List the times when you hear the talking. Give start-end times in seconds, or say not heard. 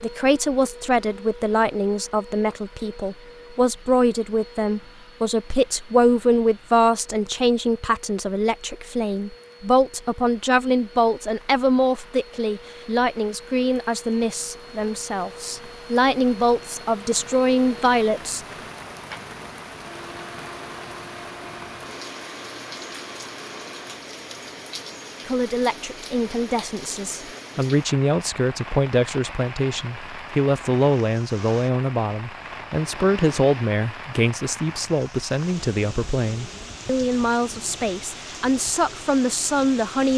0.0-18.4, 25.2-40.1.